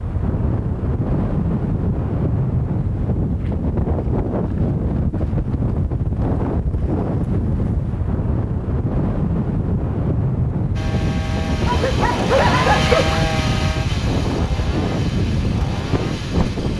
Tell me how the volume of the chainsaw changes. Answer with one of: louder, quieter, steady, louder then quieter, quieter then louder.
louder then quieter.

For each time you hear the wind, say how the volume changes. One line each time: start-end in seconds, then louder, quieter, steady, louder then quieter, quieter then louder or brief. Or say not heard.
0.0-16.7 steady.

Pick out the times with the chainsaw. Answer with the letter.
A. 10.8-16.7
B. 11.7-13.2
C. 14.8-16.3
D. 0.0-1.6
A.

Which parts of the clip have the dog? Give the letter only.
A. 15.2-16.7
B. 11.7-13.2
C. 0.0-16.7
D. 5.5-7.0
B.